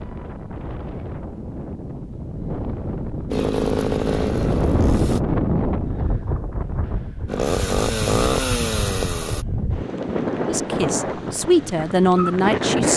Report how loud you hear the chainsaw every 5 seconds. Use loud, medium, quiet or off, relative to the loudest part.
loud, loud, off.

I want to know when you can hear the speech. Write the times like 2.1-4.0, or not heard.
10.4-12.9.